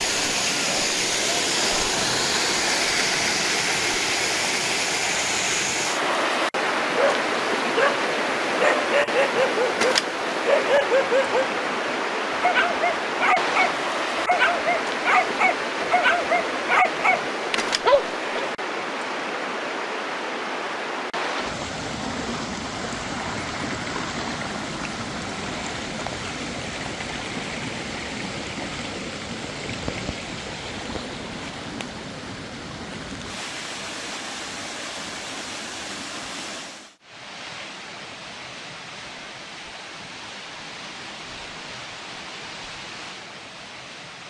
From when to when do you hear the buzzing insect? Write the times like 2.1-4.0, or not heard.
not heard.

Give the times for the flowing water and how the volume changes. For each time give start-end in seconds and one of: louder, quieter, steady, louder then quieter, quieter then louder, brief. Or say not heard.
0.0-44.2 quieter.